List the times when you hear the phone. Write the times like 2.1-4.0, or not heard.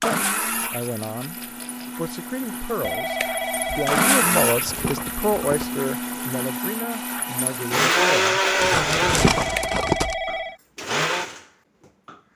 2.8-4.2, 9.2-10.6.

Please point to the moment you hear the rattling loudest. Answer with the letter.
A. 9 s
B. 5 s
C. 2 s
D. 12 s
A.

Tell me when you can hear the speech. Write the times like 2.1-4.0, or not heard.
0.0-8.6.